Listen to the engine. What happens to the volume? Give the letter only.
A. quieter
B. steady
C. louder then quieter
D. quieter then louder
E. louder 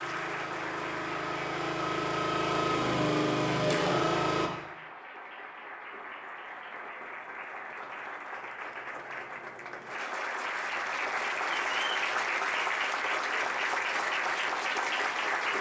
E.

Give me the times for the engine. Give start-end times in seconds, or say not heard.
0.0-4.5.